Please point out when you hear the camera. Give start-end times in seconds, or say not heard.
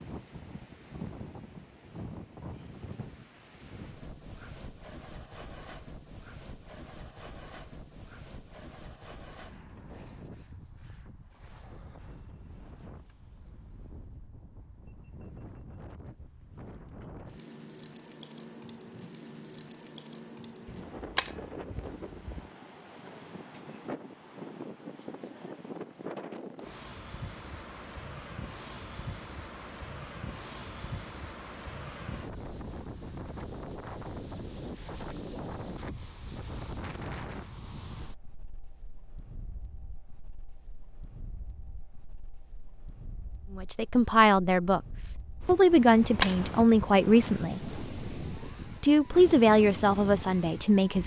20.6-22.4, 45.7-47.0.